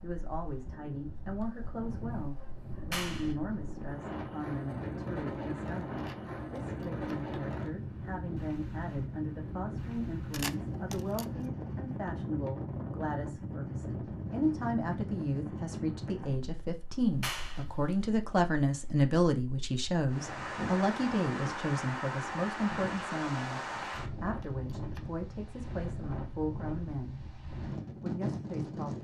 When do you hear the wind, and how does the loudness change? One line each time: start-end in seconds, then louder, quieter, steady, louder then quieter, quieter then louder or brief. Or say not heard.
0.0-28.9 steady.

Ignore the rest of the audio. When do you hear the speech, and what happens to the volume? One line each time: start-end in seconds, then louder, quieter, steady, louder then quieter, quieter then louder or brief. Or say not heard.
0.0-27.2 louder then quieter
28.0-28.9 brief.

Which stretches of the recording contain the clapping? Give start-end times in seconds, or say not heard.
2.9-3.4, 17.2-17.6.